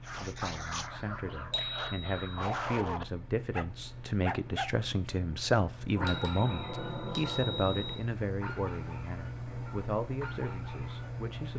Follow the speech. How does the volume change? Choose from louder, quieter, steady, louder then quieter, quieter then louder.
louder then quieter.